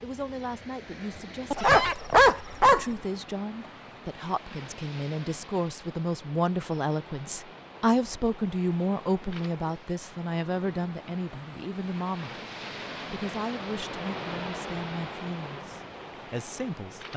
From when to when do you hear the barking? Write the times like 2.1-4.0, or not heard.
1.5-2.9.